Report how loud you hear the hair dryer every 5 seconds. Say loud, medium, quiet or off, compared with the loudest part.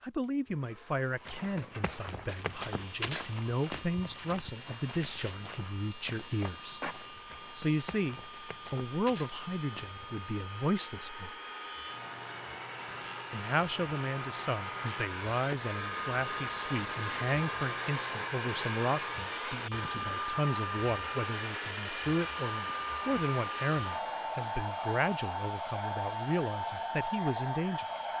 quiet, quiet, medium, loud, loud, loud.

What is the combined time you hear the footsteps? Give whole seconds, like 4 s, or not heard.
9 s.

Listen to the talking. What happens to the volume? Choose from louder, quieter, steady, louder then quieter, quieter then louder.
steady.